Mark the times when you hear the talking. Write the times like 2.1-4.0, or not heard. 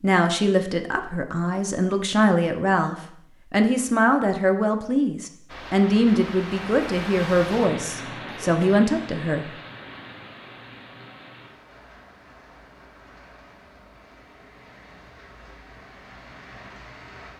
0.0-9.4.